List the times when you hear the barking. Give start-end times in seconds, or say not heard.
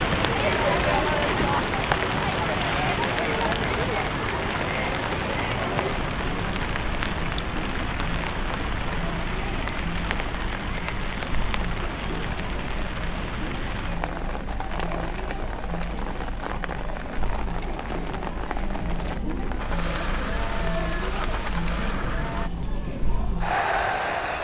not heard.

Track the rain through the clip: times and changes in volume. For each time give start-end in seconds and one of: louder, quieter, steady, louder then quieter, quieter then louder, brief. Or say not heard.
0.0-24.3 quieter.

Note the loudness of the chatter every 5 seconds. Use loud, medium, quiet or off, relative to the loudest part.
loud, medium, medium, medium, loud.